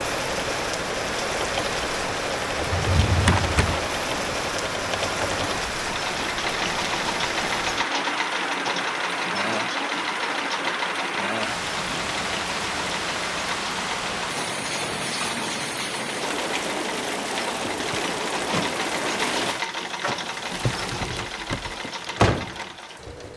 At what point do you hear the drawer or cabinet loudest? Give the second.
3 s.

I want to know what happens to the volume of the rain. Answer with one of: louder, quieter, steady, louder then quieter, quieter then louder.
steady.